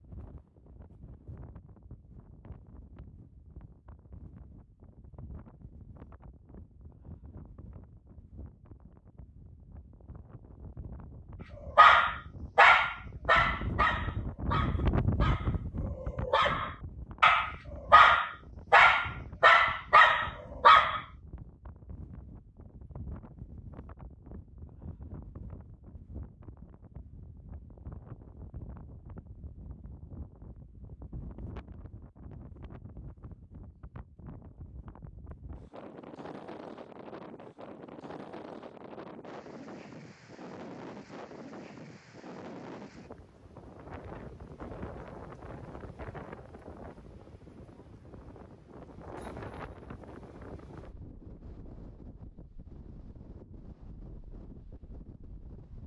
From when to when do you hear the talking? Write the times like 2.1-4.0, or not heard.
not heard.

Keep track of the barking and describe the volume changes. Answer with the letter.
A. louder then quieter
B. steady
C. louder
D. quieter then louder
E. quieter
D.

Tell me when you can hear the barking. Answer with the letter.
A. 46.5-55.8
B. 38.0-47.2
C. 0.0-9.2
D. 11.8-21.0
D.